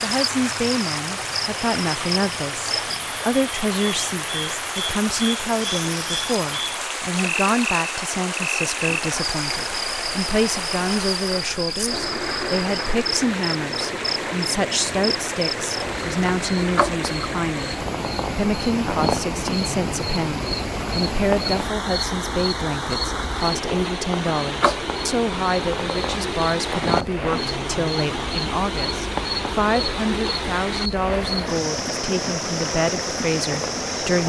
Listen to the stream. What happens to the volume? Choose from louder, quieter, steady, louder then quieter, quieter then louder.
steady.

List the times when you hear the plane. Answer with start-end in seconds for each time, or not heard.
not heard.